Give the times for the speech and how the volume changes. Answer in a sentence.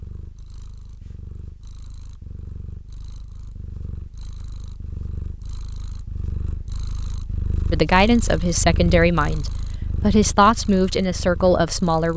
The speech can be heard from 7.7 to 12.1 s, at a steady volume.